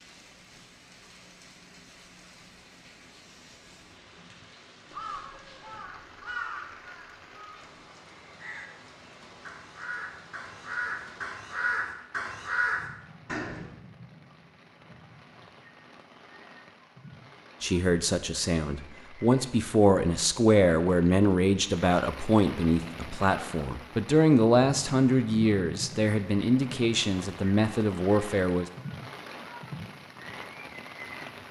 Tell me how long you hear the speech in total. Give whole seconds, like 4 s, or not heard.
11 s.